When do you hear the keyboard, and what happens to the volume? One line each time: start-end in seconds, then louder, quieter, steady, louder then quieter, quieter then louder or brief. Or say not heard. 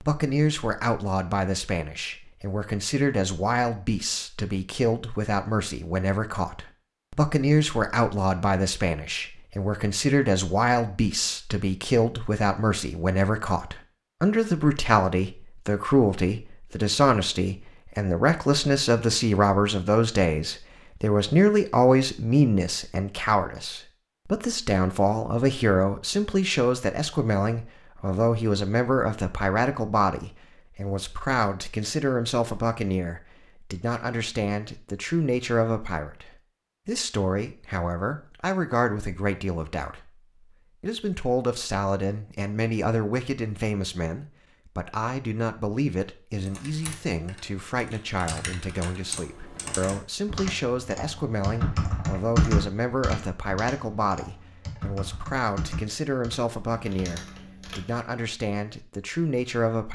46.4-58.0 louder then quieter.